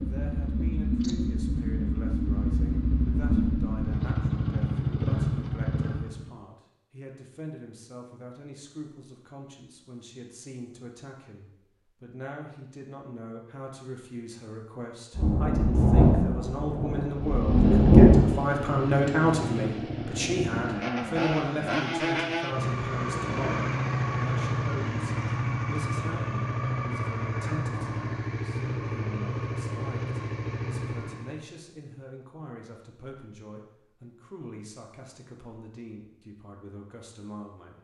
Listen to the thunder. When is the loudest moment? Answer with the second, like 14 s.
18 s.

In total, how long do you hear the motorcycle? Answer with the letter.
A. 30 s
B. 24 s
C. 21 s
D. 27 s
C.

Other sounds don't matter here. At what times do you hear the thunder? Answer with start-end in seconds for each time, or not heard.
15.2-18.2.